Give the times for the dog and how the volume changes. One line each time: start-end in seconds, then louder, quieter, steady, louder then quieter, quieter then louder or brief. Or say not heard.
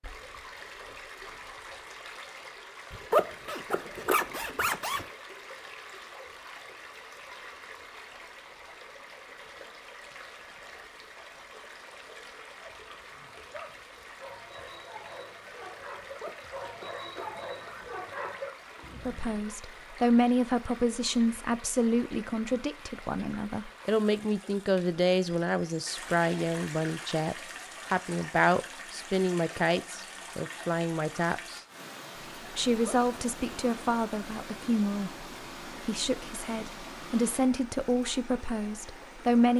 12.6-19.4 louder.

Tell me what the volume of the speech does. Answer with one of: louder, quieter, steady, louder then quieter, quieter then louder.
steady.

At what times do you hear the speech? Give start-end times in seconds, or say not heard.
19.1-31.6, 32.5-39.5.